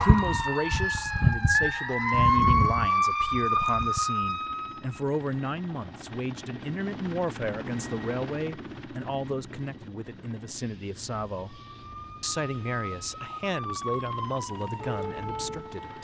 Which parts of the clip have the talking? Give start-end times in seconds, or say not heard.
0.0-11.6, 12.2-15.9.